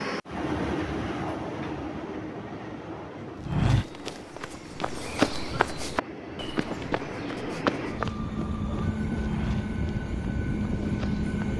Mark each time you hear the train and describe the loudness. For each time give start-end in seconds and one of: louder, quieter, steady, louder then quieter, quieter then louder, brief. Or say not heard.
0.0-11.5 quieter then louder.